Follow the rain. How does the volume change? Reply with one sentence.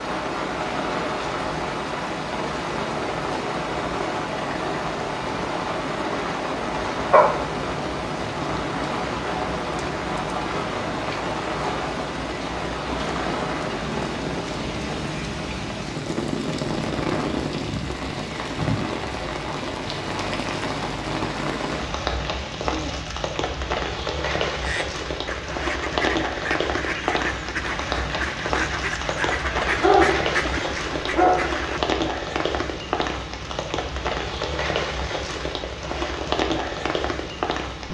The loudness of the rain stays about the same.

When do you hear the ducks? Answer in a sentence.
The ducks can be heard from 24.6 to 31.8 s.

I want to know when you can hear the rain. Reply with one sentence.
You can hear the rain from 0.0 to 37.8 s.